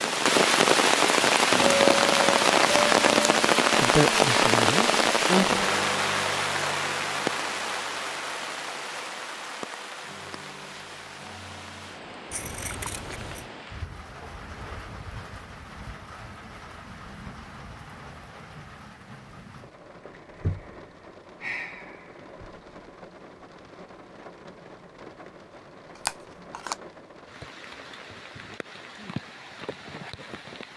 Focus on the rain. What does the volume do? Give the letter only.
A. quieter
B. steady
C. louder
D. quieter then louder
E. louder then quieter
A.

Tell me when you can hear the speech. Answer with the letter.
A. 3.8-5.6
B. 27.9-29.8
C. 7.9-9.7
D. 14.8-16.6
A.